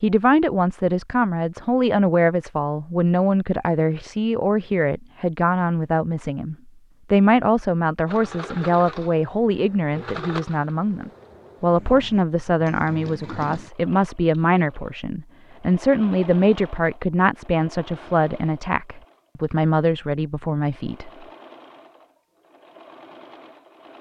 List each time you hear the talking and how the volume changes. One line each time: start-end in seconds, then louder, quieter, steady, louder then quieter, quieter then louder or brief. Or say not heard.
0.0-21.1 steady.